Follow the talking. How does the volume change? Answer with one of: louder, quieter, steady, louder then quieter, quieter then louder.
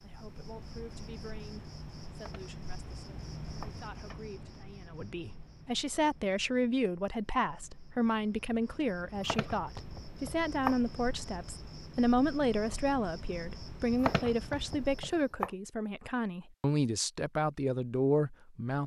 louder.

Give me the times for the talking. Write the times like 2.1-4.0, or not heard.
0.0-18.8.